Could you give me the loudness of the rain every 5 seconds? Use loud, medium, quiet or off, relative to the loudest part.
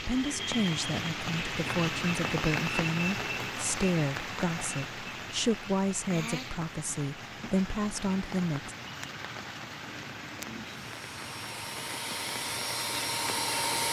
loud, medium, medium.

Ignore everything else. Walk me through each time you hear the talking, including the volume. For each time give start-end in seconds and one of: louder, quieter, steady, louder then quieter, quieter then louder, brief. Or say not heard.
0.0-8.8 steady.